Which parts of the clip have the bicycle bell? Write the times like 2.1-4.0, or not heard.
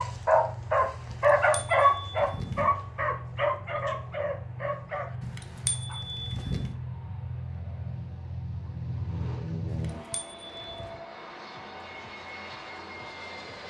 1.1-2.7, 5.2-6.8, 9.7-11.0.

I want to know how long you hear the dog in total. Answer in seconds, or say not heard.
6 s.